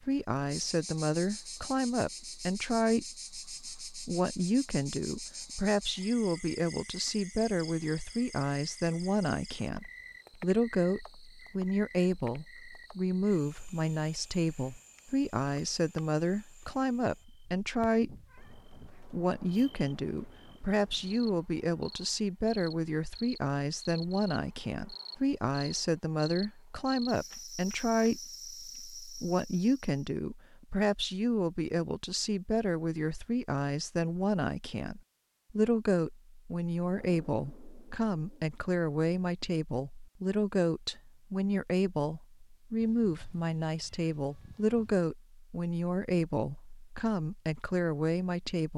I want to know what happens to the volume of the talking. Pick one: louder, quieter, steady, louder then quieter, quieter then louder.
steady.